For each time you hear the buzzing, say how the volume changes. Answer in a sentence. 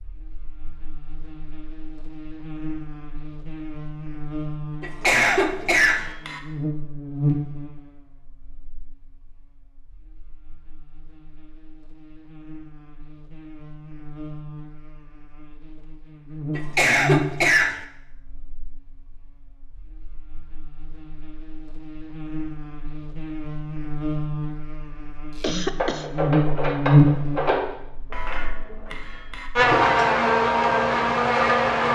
You can hear the buzzing from 0.0 to 31.9 s, getting louder.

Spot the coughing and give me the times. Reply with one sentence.
You can hear the coughing from 4.8 to 6.1 s, from 16.6 to 17.9 s and from 25.4 to 26.1 s.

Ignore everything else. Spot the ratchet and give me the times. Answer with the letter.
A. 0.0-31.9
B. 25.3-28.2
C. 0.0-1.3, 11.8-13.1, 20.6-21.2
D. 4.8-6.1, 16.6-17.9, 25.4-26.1
B.